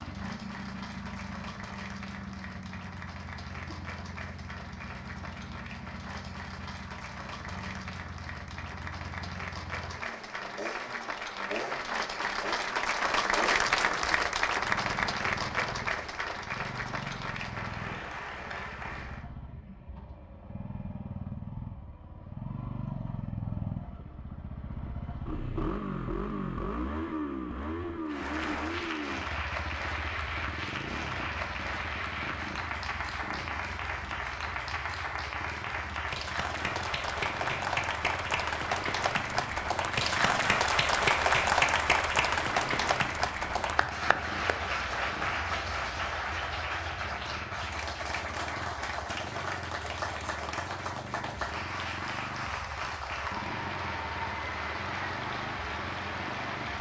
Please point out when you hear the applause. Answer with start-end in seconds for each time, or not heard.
0.0-19.2, 28.1-56.7.